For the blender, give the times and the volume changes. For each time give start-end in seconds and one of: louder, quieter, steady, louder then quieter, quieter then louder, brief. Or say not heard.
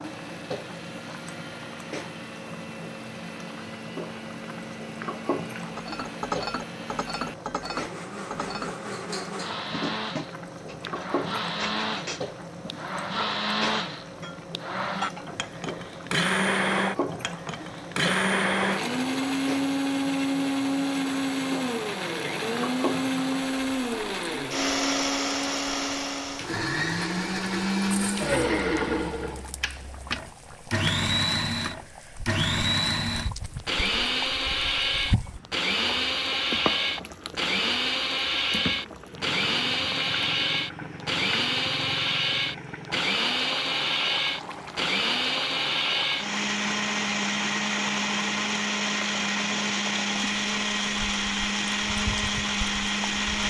0.0-53.4 louder.